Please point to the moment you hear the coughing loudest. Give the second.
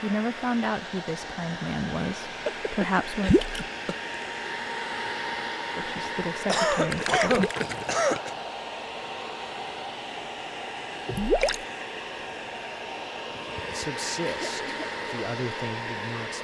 7 s.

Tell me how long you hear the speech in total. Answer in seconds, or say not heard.
8 s.